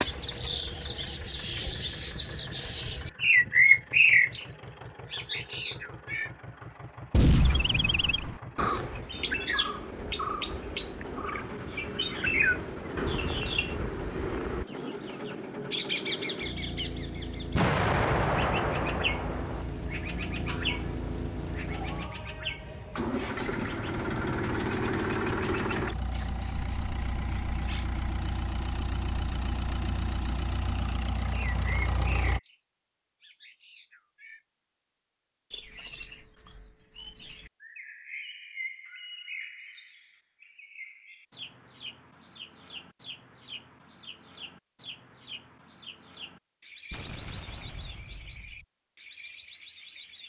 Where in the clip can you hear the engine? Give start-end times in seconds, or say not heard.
0.0-32.4.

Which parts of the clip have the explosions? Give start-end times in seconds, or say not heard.
7.1-8.4, 17.6-19.6, 46.9-48.6.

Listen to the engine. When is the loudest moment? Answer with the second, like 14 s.
25 s.